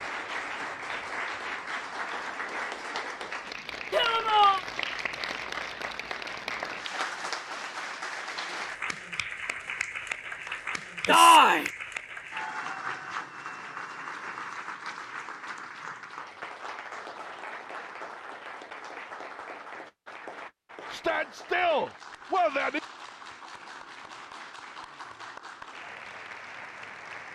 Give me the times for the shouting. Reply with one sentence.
The shouting can be heard from 3.9 to 4.6 s, from 11.1 to 11.7 s and from 20.9 to 22.8 s.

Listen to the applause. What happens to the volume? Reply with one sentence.
The volume of the applause goes down.